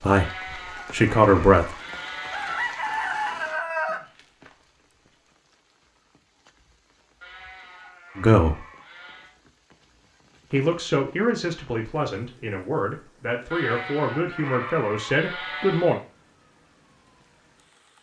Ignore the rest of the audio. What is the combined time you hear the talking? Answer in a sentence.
The talking can be heard for 8 seconds in total.